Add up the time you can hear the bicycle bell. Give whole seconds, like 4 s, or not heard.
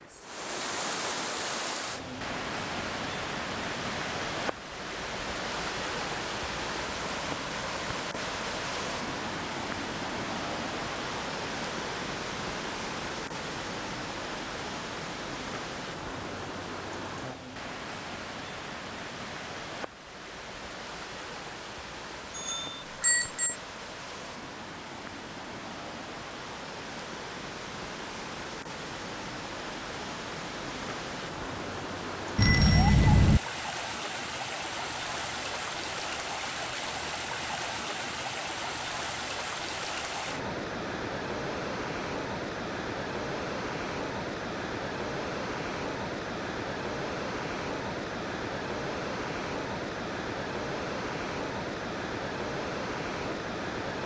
2 s.